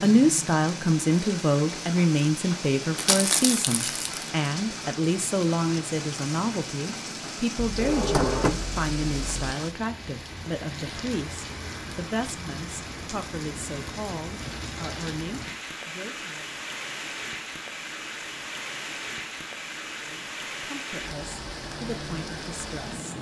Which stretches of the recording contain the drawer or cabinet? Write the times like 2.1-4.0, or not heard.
7.5-9.6.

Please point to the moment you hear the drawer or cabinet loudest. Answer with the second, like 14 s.
8 s.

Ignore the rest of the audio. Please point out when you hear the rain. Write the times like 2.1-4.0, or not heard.
0.0-23.1.